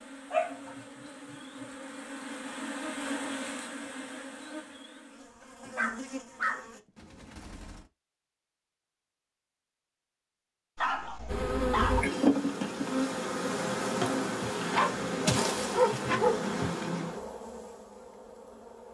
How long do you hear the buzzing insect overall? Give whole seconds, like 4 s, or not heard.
14 s.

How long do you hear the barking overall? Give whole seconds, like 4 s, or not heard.
6 s.